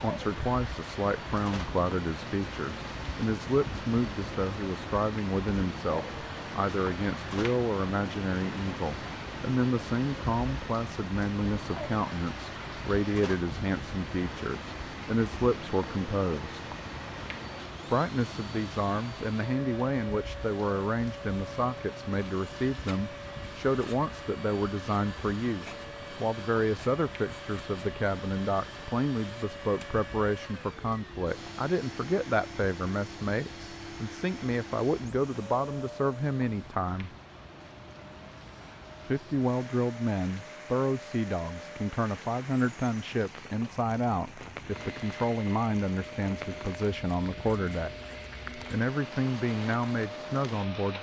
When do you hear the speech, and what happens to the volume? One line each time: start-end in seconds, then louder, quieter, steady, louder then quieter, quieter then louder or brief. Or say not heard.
0.0-16.6 steady
17.9-37.1 steady
39.0-48.0 steady
48.5-50.9 brief.